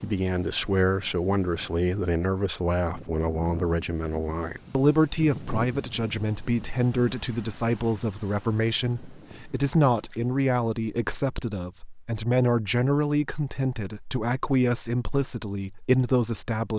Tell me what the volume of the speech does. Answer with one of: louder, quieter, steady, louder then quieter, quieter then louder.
steady.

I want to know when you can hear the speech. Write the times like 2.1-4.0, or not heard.
0.0-16.7.